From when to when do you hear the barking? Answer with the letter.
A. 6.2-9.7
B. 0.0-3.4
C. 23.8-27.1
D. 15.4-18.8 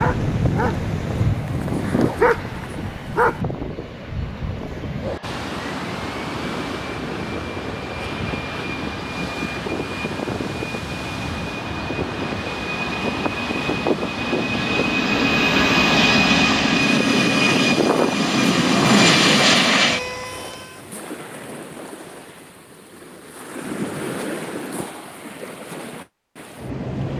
B.